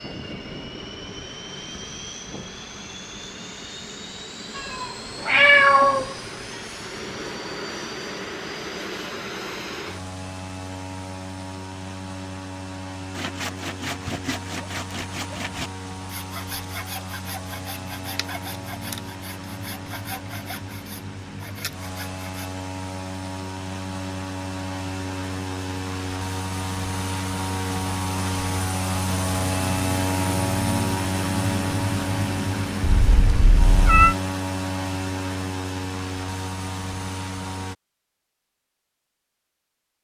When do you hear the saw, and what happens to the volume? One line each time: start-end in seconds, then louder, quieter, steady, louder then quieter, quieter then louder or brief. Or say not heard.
13.1-22.5 quieter.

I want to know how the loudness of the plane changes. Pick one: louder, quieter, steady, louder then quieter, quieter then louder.
louder.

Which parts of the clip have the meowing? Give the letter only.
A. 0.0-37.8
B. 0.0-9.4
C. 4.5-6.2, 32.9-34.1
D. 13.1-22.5
C.